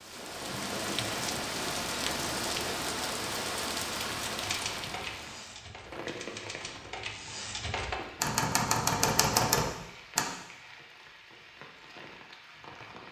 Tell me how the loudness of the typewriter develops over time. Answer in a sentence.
The loudness of the typewriter goes up.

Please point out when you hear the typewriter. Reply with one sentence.
You can hear the typewriter from 4.4 to 10.2 s.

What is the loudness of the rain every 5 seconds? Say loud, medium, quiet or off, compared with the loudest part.
loud, medium, quiet.